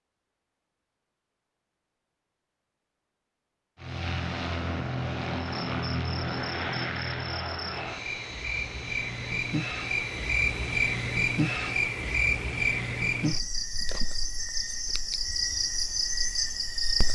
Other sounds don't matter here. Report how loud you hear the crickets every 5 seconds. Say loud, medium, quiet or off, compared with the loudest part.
off, medium, loud, loud.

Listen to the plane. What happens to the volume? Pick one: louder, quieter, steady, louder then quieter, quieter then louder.
quieter.